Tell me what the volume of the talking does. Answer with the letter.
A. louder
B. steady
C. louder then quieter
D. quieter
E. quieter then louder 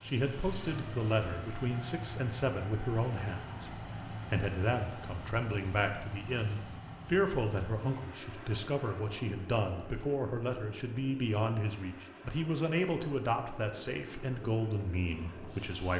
B.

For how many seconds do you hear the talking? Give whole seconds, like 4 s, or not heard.
16 s.